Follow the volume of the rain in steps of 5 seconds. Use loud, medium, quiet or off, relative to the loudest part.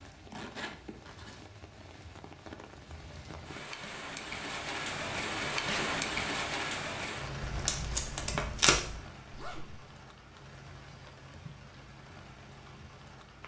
medium, loud, quiet.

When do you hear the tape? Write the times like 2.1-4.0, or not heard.
7.5-8.9.